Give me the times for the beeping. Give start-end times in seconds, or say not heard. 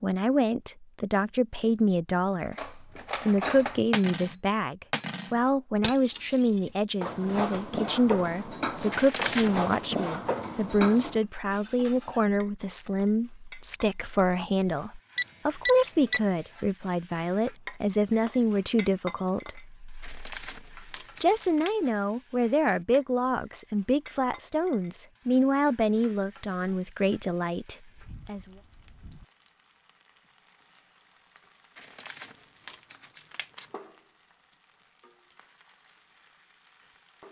15.2-16.2.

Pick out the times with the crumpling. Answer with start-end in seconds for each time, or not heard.
8.9-9.8, 20.0-21.8, 31.8-33.7.